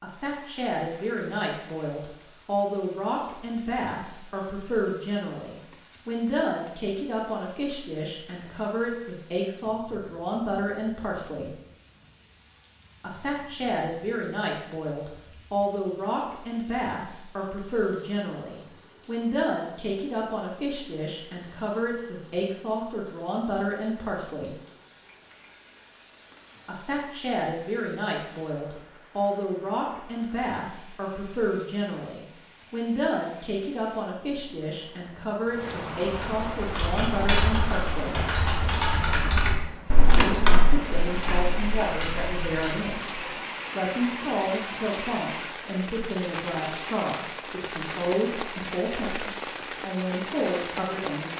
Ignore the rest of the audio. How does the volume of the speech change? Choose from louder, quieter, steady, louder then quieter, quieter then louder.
steady.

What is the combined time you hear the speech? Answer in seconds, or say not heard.
46 s.